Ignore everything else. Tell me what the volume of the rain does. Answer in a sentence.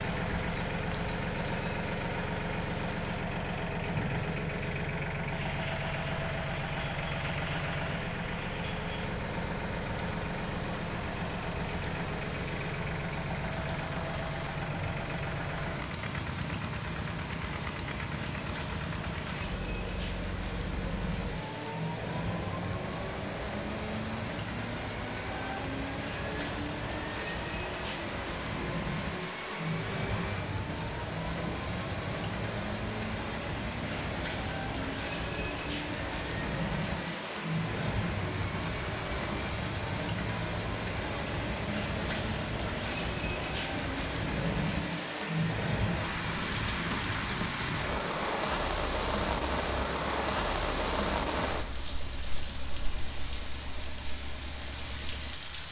The loudness of the rain goes up.